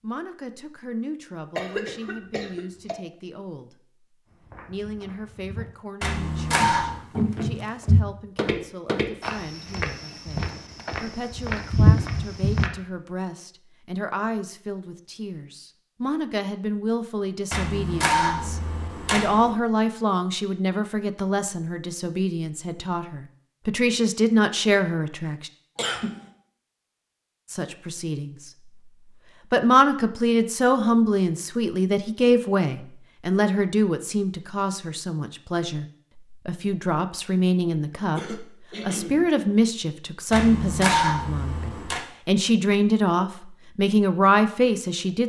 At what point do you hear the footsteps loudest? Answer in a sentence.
The volume of the footsteps peaks at 12 seconds.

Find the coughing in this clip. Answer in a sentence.
You can hear the coughing from 1.6 to 3.0 s, from 25.8 to 26.2 s and from 37.6 to 39.3 s.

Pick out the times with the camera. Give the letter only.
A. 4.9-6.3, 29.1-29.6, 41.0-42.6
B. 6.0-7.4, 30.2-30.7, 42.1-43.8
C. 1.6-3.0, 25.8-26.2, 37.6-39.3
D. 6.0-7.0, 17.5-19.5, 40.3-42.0
D.